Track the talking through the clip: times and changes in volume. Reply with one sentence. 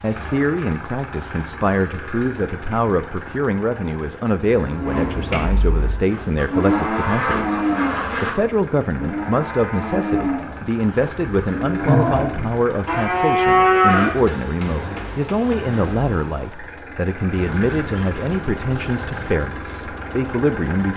The talking can be heard from 0.0 to 20.9 s, at a steady volume.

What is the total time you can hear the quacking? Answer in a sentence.
You can hear the quacking for 4 seconds altogether.